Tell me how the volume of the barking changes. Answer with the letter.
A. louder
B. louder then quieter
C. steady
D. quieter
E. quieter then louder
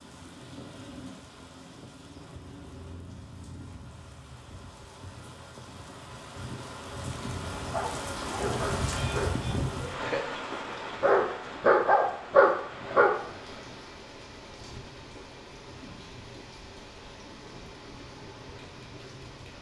A.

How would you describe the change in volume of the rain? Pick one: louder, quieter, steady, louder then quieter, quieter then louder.
louder then quieter.